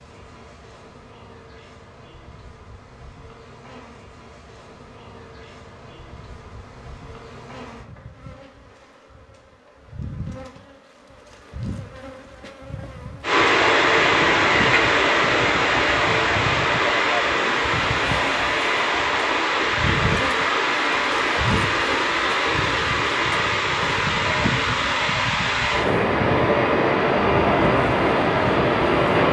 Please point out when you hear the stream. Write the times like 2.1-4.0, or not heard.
13.2-29.2.